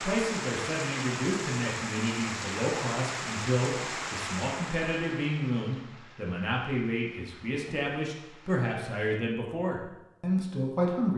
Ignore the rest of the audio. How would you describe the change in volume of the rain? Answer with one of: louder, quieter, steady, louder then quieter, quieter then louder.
quieter.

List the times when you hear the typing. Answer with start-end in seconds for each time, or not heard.
not heard.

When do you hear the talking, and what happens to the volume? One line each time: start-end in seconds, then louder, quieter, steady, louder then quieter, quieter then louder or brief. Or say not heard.
0.0-11.1 steady.